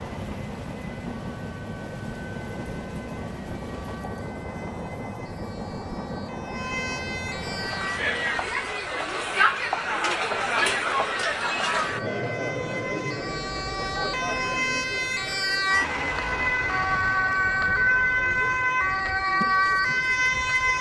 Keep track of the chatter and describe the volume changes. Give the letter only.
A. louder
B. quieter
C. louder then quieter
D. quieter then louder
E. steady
B.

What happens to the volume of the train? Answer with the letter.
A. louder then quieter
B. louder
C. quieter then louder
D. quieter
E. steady
E.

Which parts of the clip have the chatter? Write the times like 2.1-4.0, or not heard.
7.5-20.7.